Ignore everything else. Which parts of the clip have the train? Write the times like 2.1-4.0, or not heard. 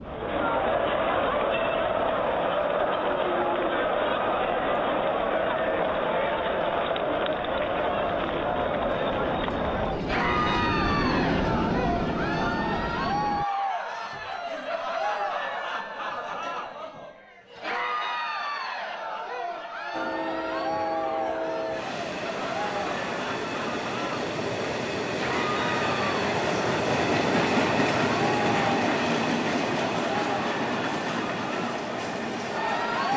0.0-13.4, 19.9-33.1.